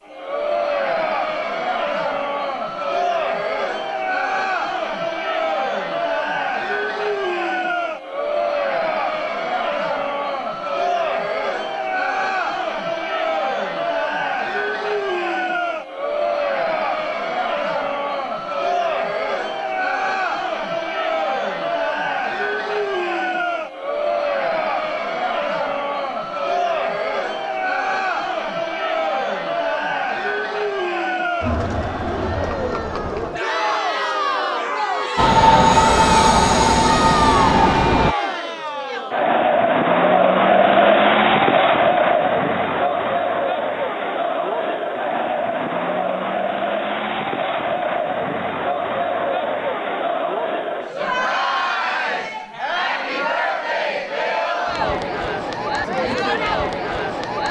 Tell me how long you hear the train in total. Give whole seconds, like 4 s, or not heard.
3 s.